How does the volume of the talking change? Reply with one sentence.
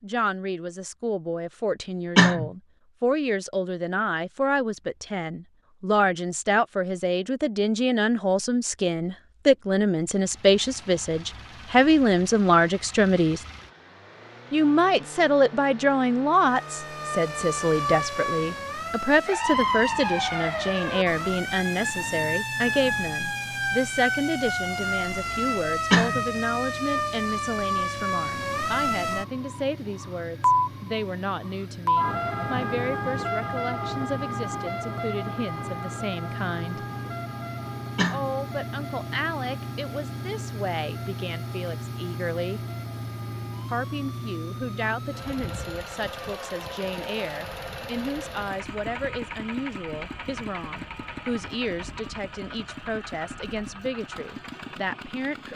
The loudness of the talking goes down.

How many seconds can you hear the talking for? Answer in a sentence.
The talking can be heard for 52 seconds in total.